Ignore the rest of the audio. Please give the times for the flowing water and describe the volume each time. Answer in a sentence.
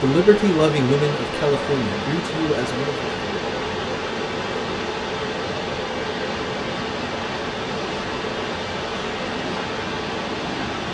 The flowing water can be heard from 0.0 to 10.8 s, at a steady volume.